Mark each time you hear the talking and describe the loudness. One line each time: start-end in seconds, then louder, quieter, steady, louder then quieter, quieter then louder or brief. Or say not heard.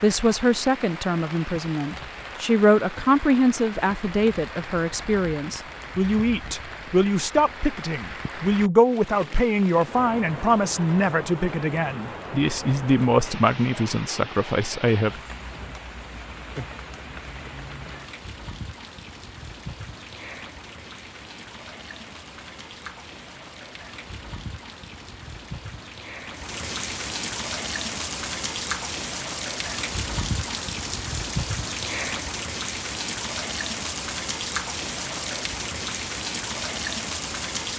0.0-15.2 steady.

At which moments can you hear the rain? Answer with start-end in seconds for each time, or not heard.
0.0-37.7.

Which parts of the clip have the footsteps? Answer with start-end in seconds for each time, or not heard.
not heard.